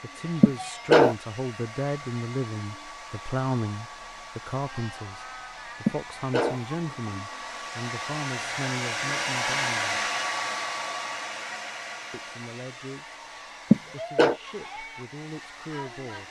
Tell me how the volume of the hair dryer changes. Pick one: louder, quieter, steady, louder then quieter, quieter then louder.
louder then quieter.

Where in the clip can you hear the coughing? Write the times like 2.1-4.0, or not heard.
0.4-1.1, 5.8-7.1, 13.7-14.3.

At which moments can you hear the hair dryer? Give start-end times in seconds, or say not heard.
0.0-16.2.